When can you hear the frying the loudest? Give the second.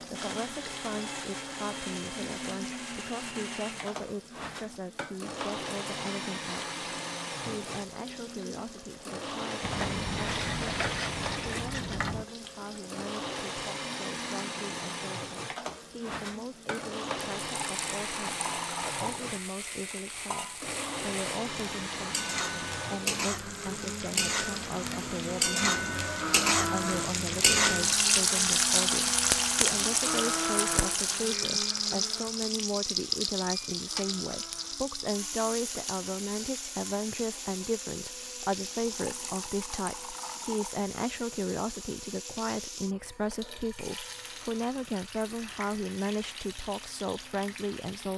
28 s.